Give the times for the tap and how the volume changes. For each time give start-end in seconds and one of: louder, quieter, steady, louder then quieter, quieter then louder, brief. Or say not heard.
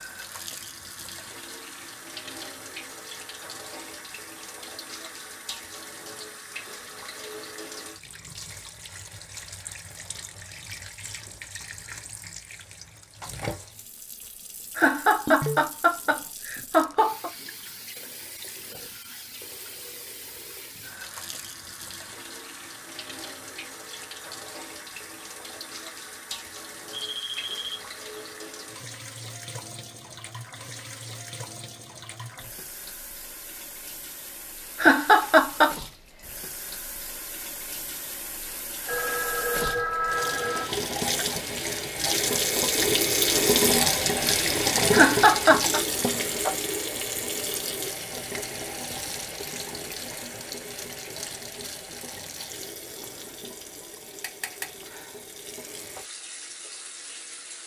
0.0-57.6 louder then quieter.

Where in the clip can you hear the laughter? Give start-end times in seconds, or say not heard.
14.8-17.3, 34.8-35.8, 44.9-45.8.